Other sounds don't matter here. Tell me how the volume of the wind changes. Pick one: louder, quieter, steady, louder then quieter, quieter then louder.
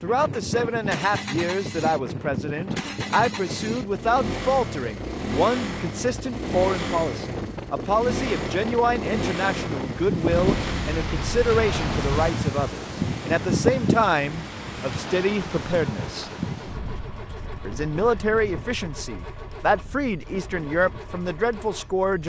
louder then quieter.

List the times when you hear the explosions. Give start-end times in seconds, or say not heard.
10.3-12.3.